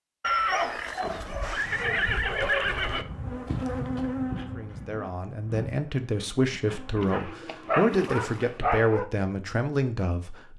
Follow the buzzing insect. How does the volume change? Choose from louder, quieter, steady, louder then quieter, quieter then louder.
louder then quieter.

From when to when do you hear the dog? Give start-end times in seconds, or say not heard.
7.0-9.1.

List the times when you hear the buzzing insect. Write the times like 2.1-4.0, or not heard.
1.5-7.2.